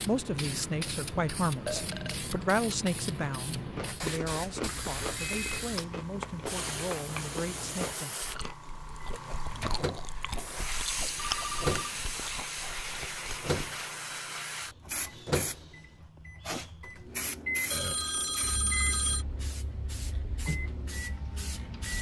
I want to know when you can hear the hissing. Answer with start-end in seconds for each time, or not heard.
0.0-21.9.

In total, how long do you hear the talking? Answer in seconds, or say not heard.
8 s.